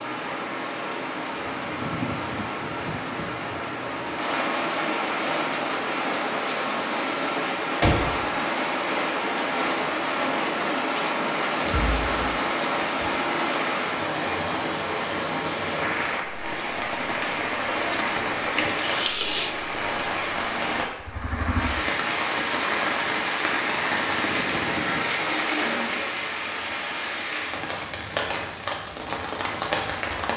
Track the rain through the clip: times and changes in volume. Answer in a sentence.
You can hear the rain from 0.0 to 30.3 s, at a steady volume.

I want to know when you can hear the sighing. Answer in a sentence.
The sighing can be heard from 18.6 to 19.6 s.